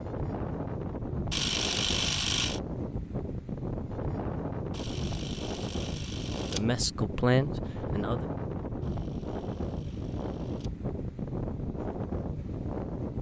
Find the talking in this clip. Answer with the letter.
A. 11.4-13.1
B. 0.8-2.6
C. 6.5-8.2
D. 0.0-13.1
C.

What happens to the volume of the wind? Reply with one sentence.
The loudness of the wind stays about the same.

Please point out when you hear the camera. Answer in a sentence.
You can hear the camera from 1.3 to 2.6 s, from 4.7 to 6.6 s and from 8.8 to 10.7 s.